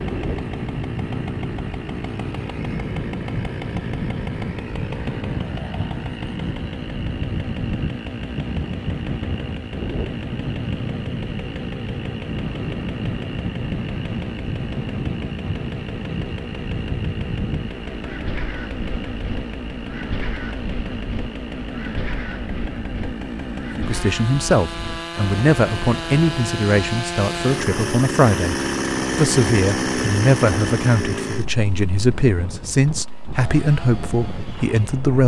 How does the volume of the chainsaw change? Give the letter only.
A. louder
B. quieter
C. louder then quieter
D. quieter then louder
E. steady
A.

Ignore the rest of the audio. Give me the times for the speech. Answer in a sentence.
The speech can be heard from 23.8 to 35.2 s.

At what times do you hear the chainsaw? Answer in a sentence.
You can hear the chainsaw from 0.0 to 35.2 s.